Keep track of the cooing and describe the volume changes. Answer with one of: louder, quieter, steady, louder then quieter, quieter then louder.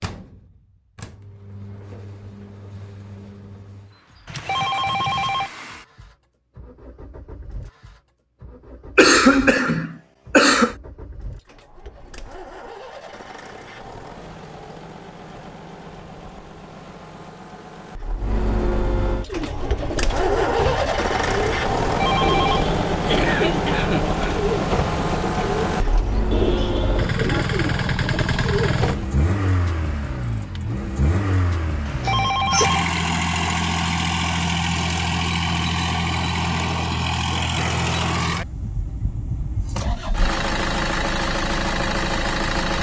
steady.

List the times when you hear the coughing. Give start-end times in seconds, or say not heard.
8.9-10.8, 23.1-24.4, 32.0-32.7.